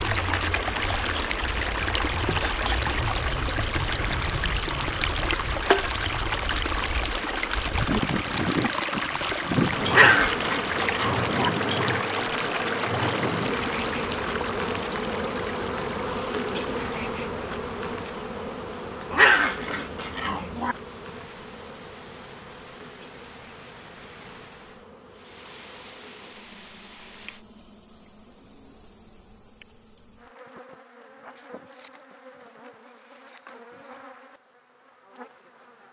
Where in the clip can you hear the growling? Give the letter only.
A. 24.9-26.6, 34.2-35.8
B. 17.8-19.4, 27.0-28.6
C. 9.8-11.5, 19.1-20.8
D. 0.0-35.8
C.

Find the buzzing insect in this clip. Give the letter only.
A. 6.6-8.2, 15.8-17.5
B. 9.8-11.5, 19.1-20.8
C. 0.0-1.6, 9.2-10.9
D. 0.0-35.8
D.